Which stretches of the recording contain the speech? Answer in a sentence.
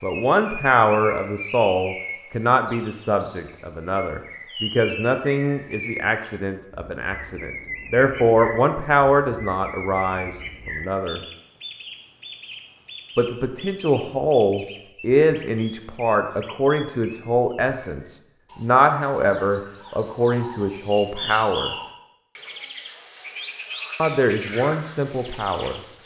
You can hear the speech from 0.0 to 11.2 s, from 13.2 to 21.7 s and from 23.9 to 25.8 s.